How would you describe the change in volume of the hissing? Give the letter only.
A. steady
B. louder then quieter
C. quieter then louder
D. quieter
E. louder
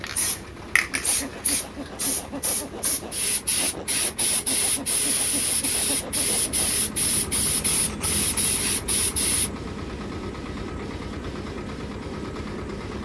D.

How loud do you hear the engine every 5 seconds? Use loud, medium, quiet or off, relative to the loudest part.
medium, loud, loud.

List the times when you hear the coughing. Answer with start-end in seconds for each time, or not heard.
not heard.